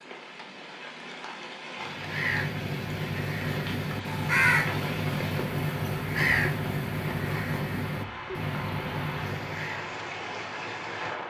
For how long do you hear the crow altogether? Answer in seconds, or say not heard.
8 s.